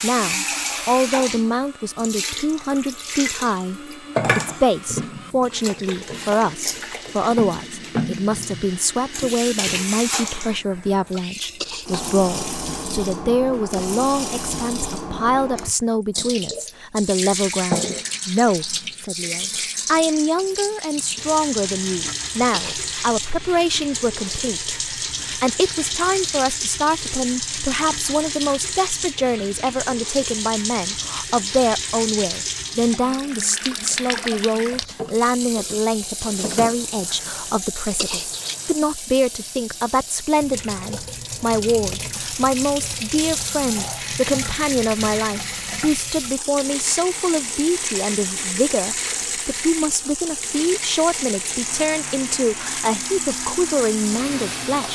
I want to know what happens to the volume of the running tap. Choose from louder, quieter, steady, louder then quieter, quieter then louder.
steady.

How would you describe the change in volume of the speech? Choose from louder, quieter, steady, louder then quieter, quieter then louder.
steady.